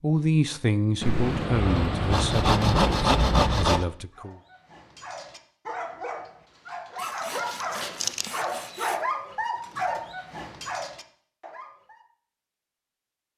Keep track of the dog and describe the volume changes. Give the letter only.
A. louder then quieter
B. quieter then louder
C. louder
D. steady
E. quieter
A.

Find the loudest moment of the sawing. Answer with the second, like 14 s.
3 s.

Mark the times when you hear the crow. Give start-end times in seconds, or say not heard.
not heard.